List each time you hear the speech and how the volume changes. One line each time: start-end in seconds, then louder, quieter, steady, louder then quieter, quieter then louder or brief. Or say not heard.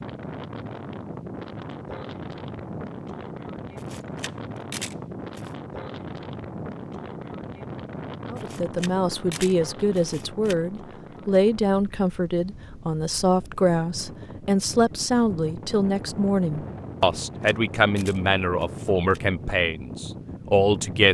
8.3-21.0 steady.